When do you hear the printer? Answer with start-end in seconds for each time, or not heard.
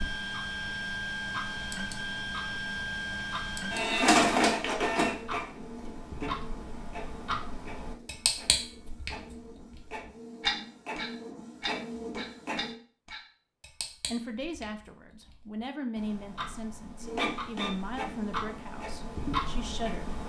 0.0-12.8, 17.0-20.1.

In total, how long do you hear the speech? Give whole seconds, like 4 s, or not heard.
6 s.